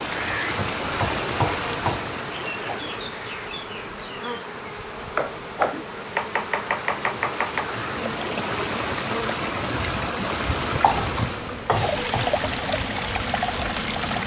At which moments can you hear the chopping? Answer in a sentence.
You can hear the chopping from 0.5 to 2.1 s, from 5.2 to 7.7 s and from 10.8 to 12.3 s.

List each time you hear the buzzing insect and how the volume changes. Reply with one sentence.
You can hear the buzzing insect from 0.1 to 14.2 s, at a steady volume.